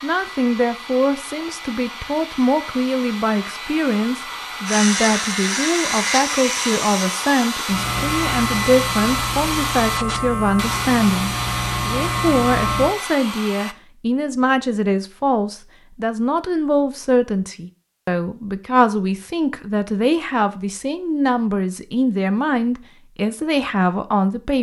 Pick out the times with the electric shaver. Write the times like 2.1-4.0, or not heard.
4.7-12.9.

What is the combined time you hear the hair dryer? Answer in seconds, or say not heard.
14 s.